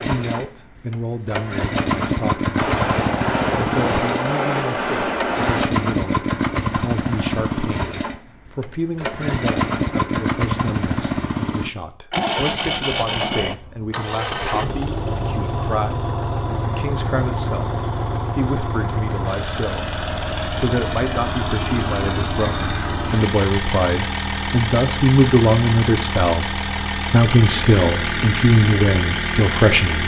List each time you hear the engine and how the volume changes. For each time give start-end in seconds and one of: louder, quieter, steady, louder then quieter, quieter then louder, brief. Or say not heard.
0.0-30.0 steady.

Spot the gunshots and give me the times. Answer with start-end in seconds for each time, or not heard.
2.5-5.7.